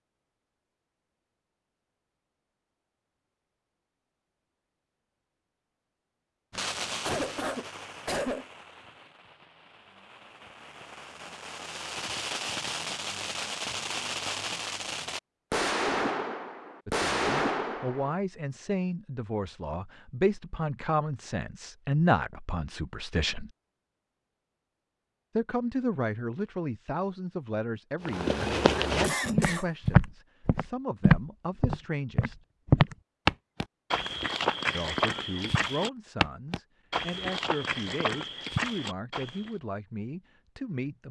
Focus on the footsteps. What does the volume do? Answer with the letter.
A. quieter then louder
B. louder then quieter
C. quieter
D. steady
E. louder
C.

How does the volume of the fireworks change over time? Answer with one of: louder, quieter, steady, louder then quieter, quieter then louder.
quieter then louder.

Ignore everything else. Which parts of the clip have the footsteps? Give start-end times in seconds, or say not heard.
28.1-39.5.